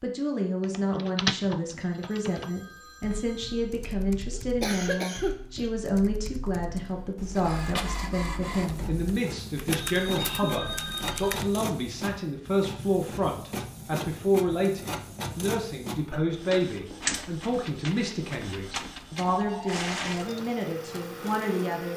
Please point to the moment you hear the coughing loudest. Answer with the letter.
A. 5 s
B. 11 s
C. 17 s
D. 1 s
A.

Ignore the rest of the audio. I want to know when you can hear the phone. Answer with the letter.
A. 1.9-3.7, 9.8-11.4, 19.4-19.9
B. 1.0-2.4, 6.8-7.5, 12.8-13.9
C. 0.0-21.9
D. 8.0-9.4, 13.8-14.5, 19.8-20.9
A.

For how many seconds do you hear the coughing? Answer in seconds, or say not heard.
3 s.